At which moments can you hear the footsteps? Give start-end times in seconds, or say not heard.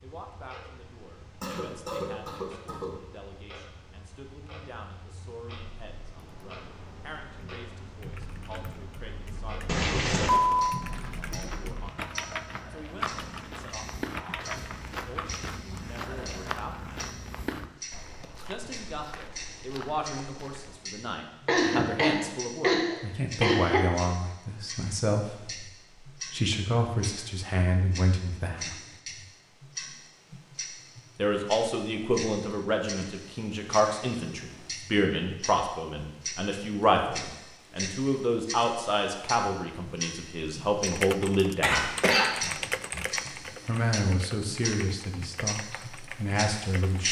10.3-20.8.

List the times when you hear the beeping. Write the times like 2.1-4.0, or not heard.
9.7-10.7.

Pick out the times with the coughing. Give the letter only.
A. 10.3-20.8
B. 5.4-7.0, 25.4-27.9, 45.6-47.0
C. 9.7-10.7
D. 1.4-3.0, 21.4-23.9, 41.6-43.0
D.